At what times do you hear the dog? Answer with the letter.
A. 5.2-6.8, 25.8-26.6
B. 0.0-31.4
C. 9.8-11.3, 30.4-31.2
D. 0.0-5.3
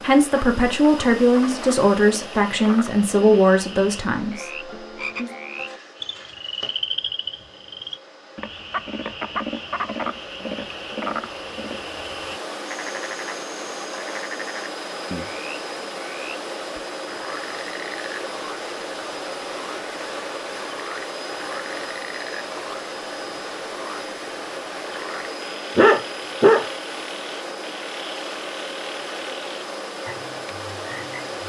A.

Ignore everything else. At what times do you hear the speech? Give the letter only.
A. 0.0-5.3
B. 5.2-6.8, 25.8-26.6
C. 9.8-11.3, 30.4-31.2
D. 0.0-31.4
A.